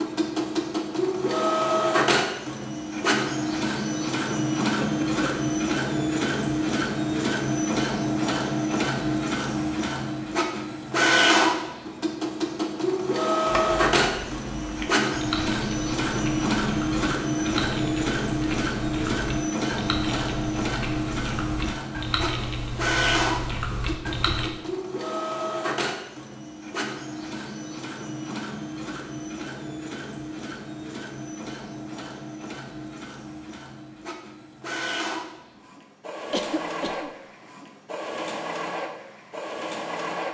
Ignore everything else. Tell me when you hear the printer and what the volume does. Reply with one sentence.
The printer can be heard from 0.0 to 40.2 s, getting quieter.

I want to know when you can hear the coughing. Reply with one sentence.
The coughing can be heard from 4.8 to 5.2 s and from 36.3 to 37.1 s.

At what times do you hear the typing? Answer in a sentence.
You can hear the typing from 13.4 to 24.5 s.